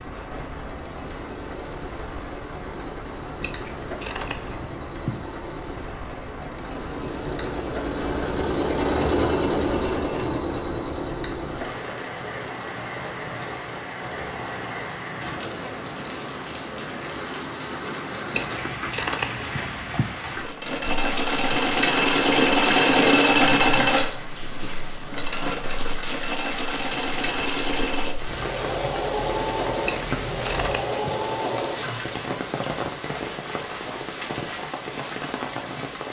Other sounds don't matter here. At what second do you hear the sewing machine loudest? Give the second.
23 s.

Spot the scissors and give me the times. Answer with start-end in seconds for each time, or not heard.
3.4-5.3, 18.3-20.1, 29.9-31.1.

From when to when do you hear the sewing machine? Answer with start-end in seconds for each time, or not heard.
0.0-15.8, 20.2-32.1.